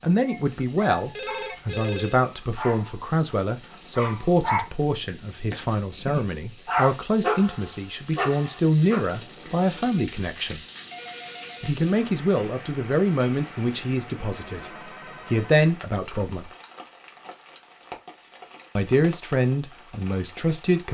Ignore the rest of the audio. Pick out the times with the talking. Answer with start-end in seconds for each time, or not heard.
0.0-10.6, 11.6-16.5, 18.8-20.8.